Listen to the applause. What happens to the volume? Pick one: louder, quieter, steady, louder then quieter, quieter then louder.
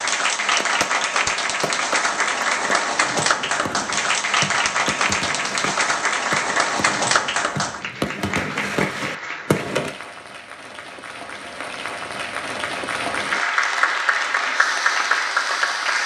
quieter then louder.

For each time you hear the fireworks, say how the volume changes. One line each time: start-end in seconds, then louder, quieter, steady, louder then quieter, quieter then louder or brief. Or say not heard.
0.5-9.9 louder.